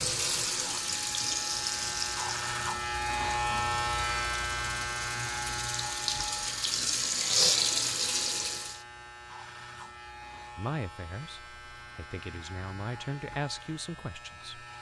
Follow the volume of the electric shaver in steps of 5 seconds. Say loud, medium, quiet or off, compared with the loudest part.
loud, medium, quiet.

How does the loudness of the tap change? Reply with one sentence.
The volume of the tap goes down, then up.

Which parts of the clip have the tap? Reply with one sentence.
The tap can be heard from 0.0 to 8.8 s.